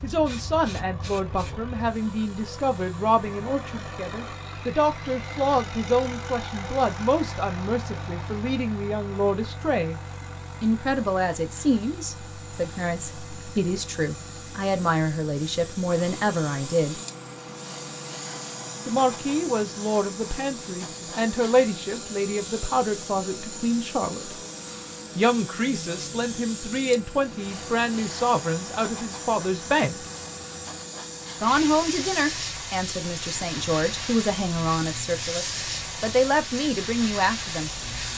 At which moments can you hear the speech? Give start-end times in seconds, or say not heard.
0.0-10.0, 10.6-17.0, 18.9-24.4, 25.1-30.1, 31.4-37.7.